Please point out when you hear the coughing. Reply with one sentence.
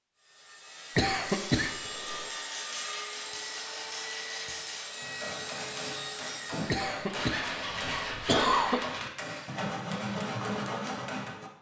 The coughing can be heard from 0.9 to 2.3 s and from 6.7 to 8.8 s.